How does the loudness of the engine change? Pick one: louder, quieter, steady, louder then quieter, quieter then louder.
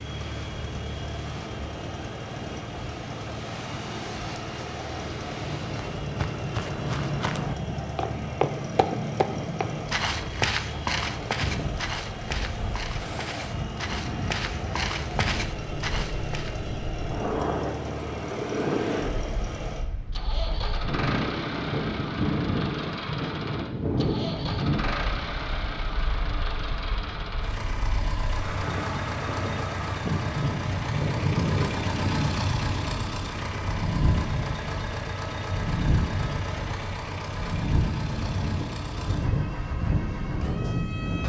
steady.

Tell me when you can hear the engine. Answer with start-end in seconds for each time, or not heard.
0.0-41.2.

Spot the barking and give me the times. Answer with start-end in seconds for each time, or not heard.
not heard.